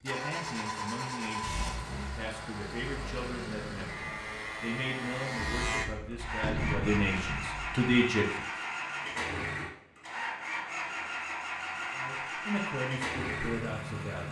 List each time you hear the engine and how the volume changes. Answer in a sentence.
You can hear the engine from 0.0 to 14.2 s, at a steady volume.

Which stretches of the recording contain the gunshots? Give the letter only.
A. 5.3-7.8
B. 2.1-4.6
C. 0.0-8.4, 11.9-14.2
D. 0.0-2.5
A.